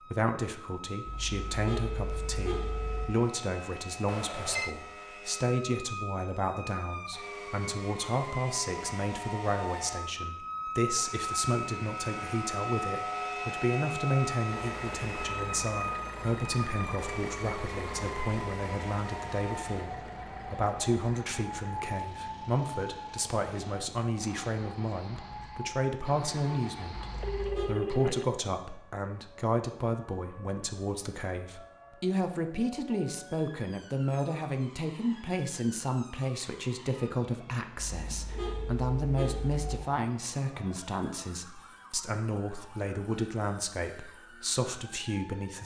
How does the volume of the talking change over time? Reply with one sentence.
The volume of the talking stays about the same.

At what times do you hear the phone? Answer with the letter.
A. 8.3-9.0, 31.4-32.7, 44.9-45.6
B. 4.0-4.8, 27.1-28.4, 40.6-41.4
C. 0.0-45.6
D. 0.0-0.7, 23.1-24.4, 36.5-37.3
B.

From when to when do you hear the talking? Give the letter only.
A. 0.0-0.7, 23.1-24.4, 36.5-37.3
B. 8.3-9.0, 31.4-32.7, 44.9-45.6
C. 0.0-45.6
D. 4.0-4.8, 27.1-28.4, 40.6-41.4
C.